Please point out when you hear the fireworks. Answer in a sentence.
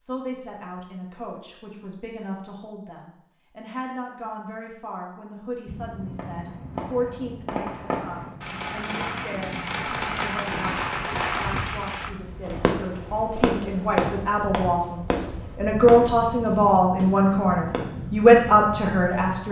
The fireworks can be heard from 6.2 to 17.9 s.